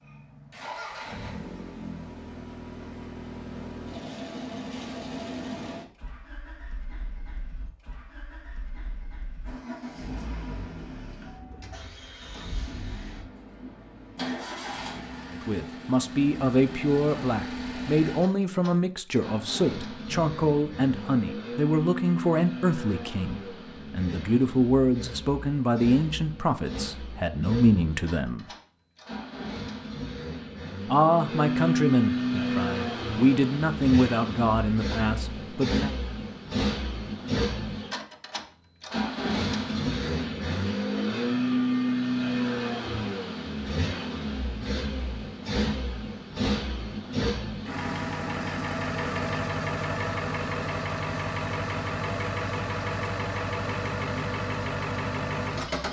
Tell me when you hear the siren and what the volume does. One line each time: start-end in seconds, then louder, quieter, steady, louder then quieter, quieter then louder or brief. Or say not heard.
not heard.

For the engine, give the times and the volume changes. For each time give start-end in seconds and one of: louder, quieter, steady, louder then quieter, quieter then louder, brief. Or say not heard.
0.0-55.8 louder.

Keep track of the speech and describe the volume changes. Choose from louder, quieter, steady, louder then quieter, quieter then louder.
steady.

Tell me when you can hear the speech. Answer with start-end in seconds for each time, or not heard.
15.3-28.4, 30.9-35.9.